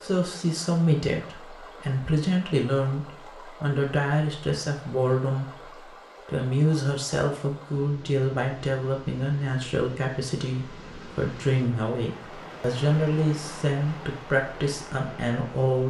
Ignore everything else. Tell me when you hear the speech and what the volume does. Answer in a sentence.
The speech can be heard from 0.0 to 15.8 s, at a steady volume.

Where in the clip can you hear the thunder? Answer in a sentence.
The thunder can't be heard in this clip.